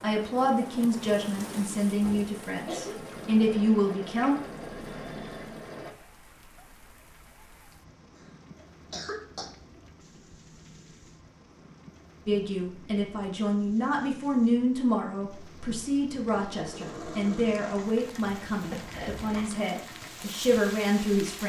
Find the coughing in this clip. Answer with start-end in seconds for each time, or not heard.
1.9-3.0, 8.2-9.5, 18.7-19.6.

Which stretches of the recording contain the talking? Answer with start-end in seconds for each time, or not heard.
0.0-4.3, 12.2-21.4.